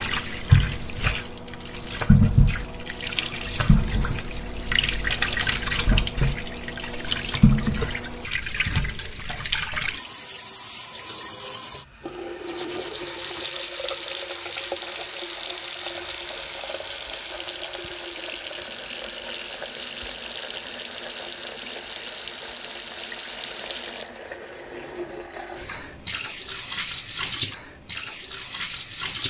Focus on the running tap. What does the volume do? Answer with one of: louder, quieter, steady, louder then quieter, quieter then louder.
quieter.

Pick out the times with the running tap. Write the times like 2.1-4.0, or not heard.
0.0-29.2.